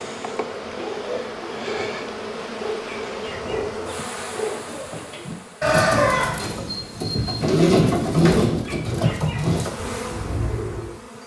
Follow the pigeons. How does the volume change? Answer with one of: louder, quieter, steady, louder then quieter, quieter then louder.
louder then quieter.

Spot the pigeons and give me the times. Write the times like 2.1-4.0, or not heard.
0.6-10.9.